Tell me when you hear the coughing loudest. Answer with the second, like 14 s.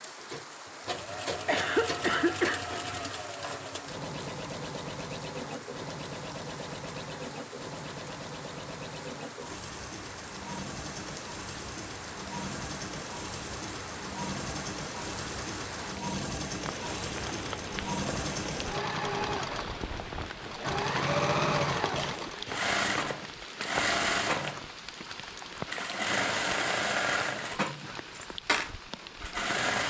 2 s.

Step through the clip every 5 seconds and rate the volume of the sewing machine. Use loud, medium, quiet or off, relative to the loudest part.
medium, medium, medium, medium, loud, loud.